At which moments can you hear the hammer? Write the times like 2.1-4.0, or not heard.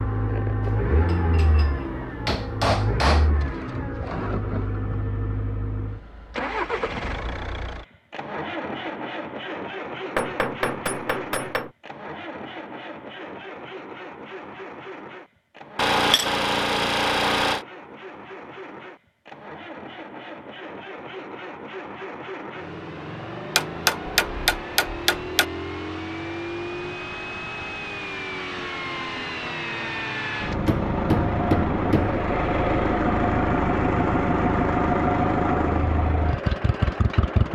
0.7-3.3, 10.2-11.7, 15.8-17.6, 23.6-25.4, 30.6-32.2.